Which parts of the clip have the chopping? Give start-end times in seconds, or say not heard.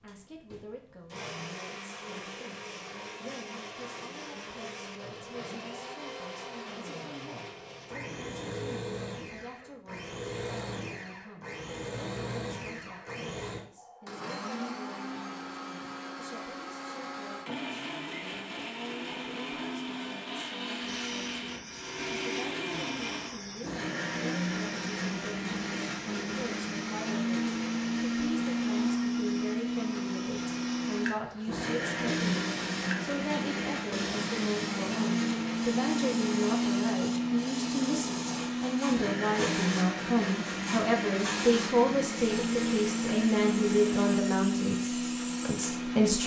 not heard.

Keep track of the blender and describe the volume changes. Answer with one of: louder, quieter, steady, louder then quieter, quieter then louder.
louder.